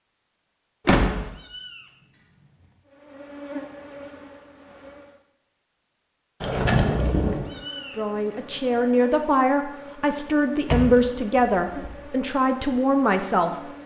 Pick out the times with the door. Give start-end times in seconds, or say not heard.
0.8-1.3, 6.4-7.5, 10.7-12.1.